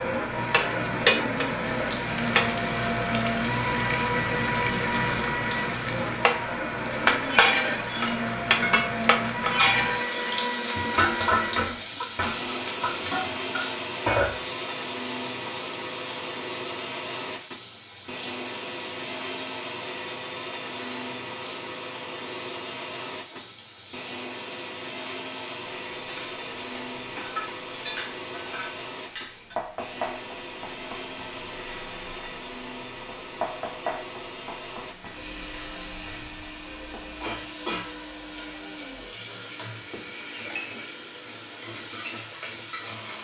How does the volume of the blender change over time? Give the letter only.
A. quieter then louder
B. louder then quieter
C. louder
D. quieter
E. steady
D.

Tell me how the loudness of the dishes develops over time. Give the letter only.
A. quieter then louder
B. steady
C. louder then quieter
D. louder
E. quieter
A.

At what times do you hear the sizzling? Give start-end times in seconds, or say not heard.
0.0-43.1.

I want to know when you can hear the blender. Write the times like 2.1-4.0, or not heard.
0.0-43.1.